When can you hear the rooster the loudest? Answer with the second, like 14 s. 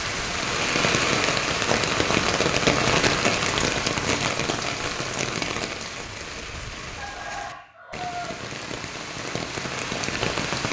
8 s.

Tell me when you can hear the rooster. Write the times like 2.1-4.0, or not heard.
7.0-8.3.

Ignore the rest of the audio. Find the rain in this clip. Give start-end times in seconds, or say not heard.
0.0-10.6.